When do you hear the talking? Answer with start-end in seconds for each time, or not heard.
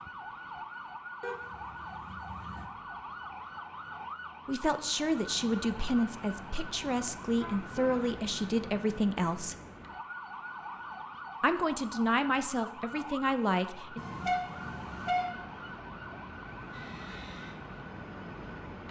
4.5-9.6, 11.4-14.0.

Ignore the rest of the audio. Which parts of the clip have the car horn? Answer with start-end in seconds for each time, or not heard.
1.2-2.6, 7.2-8.0, 13.9-15.2.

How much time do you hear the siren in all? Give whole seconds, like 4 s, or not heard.
19 s.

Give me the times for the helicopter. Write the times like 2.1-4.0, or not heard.
16.7-18.8.